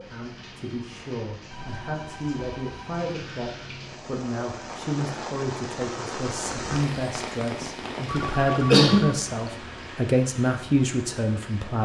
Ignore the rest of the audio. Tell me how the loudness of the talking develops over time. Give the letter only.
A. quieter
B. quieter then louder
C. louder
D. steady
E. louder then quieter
C.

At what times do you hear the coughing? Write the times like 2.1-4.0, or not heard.
8.6-9.1.